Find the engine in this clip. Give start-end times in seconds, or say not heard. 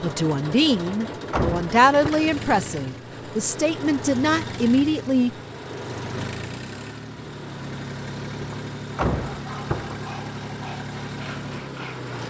0.0-12.2.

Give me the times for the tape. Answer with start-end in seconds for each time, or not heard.
not heard.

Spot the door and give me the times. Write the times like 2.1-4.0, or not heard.
0.8-2.2, 8.4-10.0.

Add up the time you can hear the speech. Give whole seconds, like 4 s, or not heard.
5 s.